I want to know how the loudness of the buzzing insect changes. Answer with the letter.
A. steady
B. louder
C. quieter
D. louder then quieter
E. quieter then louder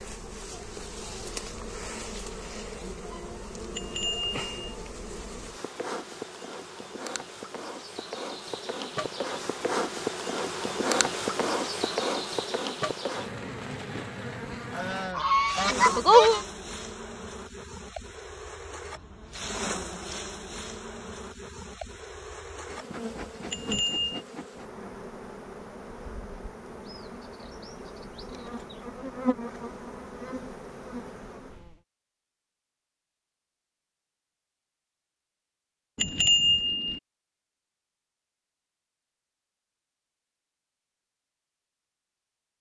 D.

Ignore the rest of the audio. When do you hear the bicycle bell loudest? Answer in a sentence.
The volume of the bicycle bell peaks at 36 seconds.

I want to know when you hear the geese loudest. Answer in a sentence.
The loudest moment of the geese is at 16 seconds.